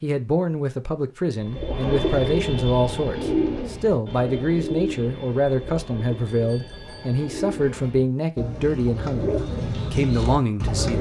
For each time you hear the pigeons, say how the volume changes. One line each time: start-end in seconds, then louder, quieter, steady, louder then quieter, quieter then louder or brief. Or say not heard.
1.4-10.9 quieter then louder.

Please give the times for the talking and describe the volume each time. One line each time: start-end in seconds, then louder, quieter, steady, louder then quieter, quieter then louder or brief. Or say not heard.
0.0-10.9 steady.